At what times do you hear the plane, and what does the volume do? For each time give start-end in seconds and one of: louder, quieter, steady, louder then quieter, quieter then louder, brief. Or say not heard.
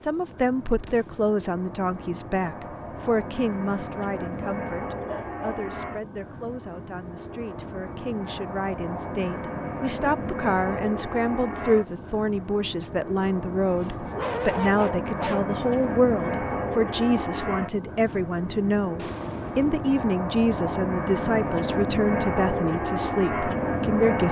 0.0-24.2 louder.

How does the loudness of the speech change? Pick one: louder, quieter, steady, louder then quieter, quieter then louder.
quieter then louder.